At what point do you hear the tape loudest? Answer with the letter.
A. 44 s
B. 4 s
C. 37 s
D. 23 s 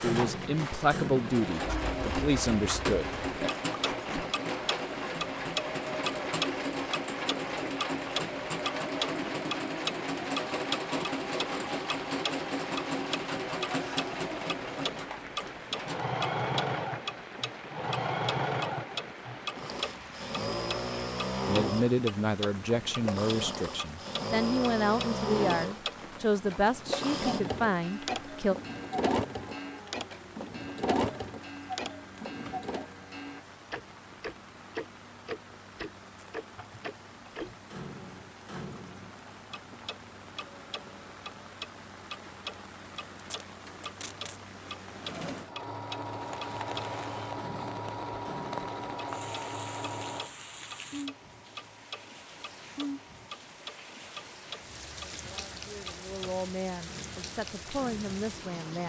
B.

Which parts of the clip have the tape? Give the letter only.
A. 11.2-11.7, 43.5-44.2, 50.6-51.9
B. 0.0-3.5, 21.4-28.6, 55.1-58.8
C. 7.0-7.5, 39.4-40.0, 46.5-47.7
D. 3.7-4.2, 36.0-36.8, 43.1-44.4
D.